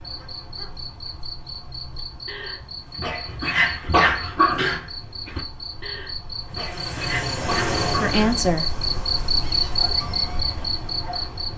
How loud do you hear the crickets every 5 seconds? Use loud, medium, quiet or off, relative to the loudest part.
medium, loud, loud.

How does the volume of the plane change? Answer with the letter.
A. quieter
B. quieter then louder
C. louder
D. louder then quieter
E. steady
A.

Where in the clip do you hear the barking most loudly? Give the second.
4 s.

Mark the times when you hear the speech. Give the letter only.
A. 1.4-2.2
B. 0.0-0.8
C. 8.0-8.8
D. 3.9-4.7
C.